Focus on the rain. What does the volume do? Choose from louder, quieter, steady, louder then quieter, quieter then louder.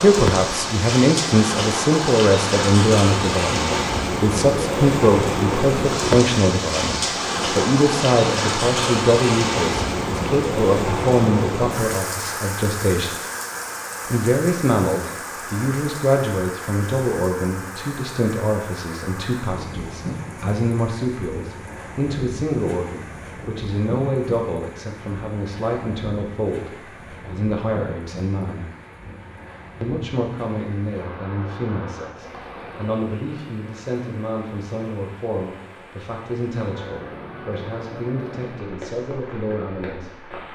quieter.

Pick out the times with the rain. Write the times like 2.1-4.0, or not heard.
0.0-40.5.